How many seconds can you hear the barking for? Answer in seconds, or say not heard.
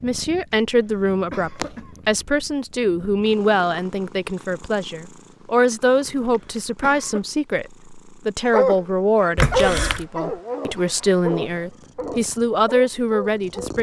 5 s.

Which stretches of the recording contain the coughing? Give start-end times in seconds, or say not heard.
0.7-2.1, 6.2-7.2, 9.3-10.1.